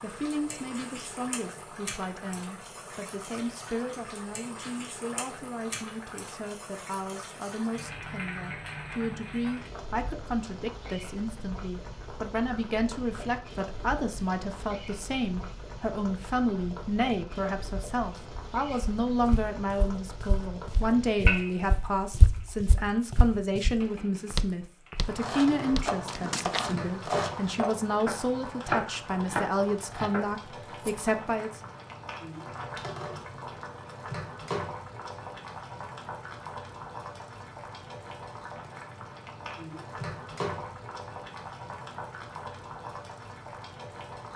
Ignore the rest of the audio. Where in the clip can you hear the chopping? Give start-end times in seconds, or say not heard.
25.1-30.2.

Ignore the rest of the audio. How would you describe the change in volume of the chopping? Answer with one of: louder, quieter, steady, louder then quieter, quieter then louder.
louder.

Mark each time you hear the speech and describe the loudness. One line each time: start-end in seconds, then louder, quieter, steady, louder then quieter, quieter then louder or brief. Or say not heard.
0.0-31.6 louder.